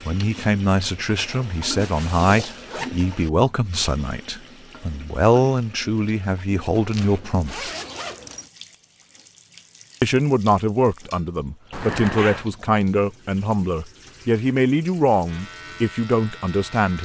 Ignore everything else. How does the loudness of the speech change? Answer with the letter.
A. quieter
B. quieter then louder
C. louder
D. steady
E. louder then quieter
D.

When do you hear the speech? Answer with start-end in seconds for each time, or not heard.
0.1-7.8, 10.0-17.0.